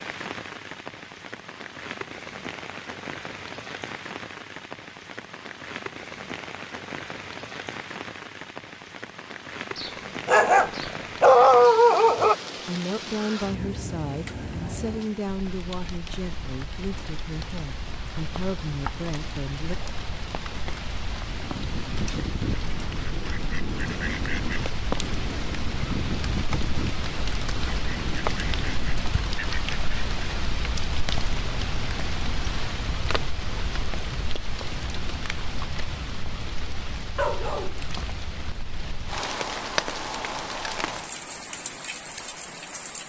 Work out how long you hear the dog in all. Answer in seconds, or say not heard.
4 s.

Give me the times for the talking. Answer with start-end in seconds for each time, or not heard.
12.2-19.8.